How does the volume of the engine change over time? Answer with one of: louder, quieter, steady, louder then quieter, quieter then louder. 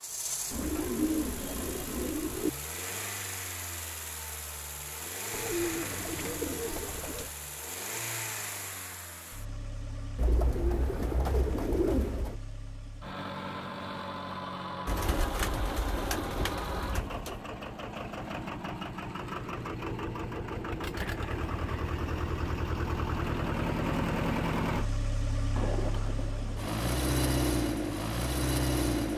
louder.